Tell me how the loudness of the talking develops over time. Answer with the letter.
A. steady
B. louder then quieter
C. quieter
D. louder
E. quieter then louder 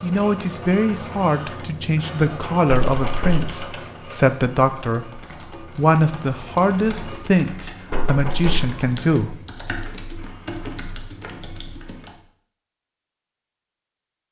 A.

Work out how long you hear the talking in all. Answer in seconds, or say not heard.
9 s.